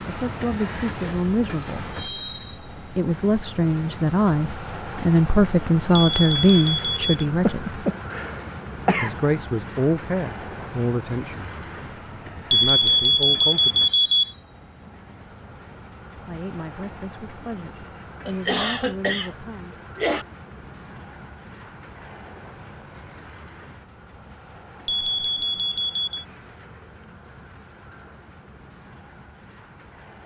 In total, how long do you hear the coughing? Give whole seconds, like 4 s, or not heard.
4 s.